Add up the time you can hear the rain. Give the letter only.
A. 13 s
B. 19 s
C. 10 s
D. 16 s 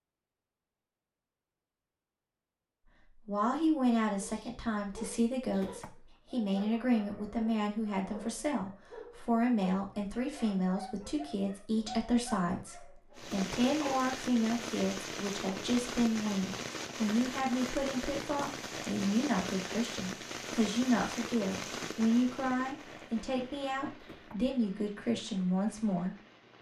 A.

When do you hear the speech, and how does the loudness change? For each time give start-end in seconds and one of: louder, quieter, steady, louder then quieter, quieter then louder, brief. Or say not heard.
3.2-26.5 steady.